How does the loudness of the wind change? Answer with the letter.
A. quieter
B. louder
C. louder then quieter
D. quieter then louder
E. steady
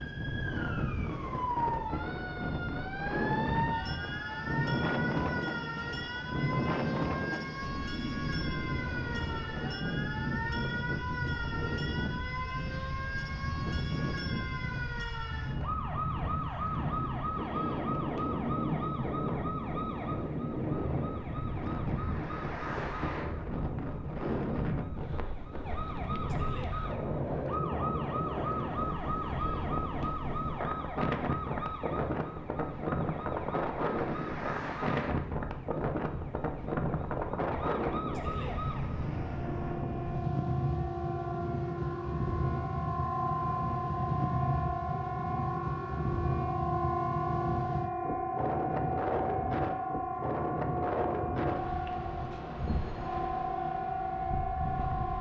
E.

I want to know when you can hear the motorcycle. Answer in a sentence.
The motorcycle can't be heard in this clip.